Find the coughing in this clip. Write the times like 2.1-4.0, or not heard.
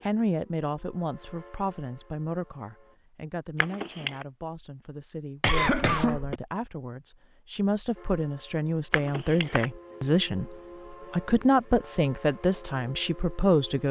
5.4-6.3.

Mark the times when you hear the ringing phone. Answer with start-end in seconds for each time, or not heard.
3.5-4.2, 8.9-9.7.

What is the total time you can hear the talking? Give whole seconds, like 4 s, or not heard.
14 s.